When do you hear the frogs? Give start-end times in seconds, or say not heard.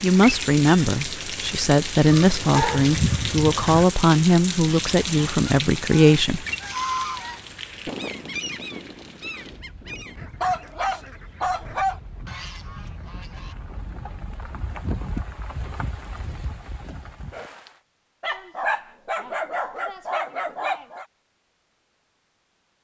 not heard.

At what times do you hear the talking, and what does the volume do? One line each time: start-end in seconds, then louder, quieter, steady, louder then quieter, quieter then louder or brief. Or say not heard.
0.0-6.5 steady.